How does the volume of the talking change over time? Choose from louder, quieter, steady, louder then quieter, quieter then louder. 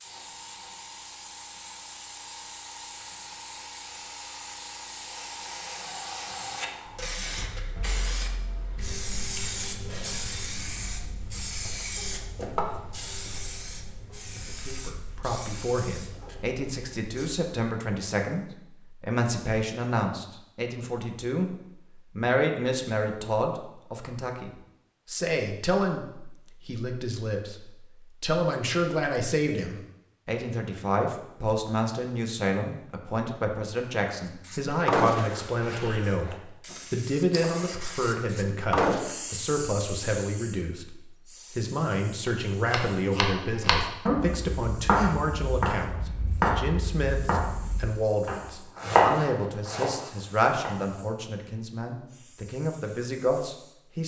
steady.